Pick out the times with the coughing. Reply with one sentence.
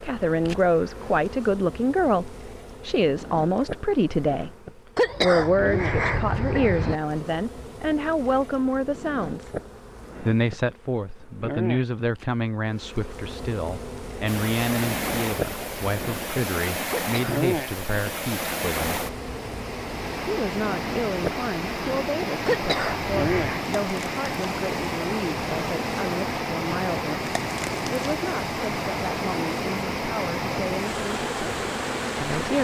You can hear the coughing from 5.0 to 7.0 s, from 16.9 to 17.5 s and from 22.4 to 23.6 s.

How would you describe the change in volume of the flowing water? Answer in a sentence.
The volume of the flowing water stays about the same.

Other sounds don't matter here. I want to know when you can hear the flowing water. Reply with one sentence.
You can hear the flowing water from 14.2 to 32.6 s.